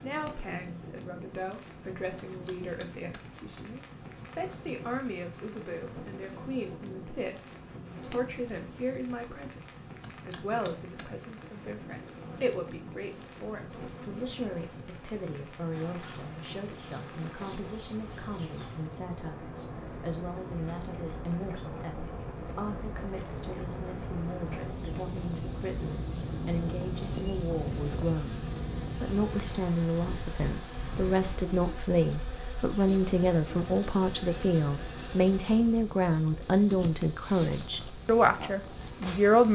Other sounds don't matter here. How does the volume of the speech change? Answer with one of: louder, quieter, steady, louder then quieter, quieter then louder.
louder.